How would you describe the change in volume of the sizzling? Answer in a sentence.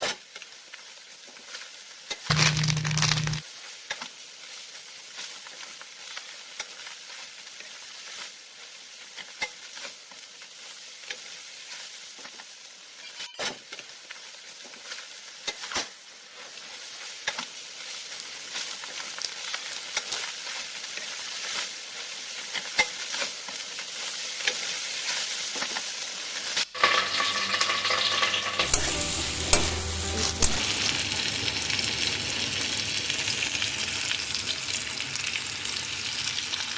The volume of the sizzling goes up.